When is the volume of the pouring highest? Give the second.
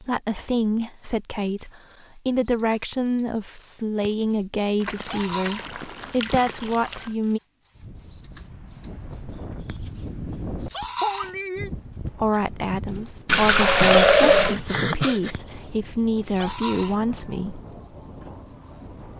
14 s.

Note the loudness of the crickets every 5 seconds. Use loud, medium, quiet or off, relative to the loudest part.
medium, loud, loud, loud.